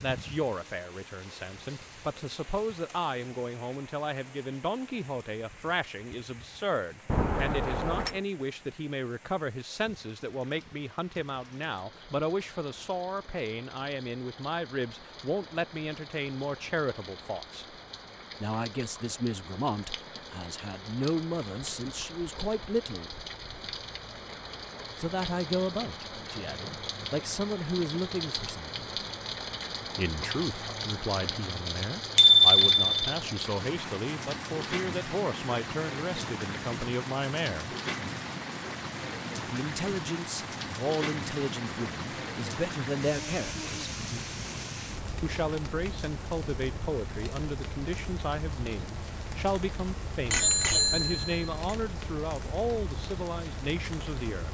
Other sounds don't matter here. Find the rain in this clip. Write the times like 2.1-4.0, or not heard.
0.0-54.4.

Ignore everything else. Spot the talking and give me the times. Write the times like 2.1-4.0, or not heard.
0.0-17.8, 18.4-23.1, 24.9-28.9, 29.9-37.8, 39.5-43.7, 45.2-54.4.